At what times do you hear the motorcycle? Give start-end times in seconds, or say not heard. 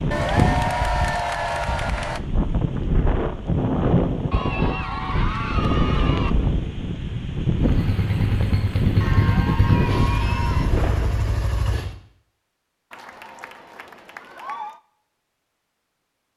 7.5-11.9.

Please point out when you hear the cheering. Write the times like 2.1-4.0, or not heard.
0.1-2.2, 4.3-6.3, 9.0-10.7, 12.9-14.8.